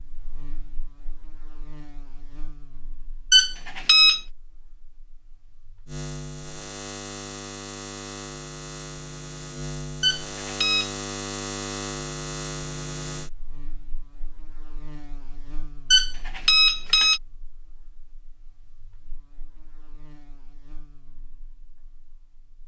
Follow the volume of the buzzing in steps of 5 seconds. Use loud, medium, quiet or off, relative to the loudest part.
quiet, loud, loud, quiet, quiet.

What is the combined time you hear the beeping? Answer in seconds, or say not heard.
3 s.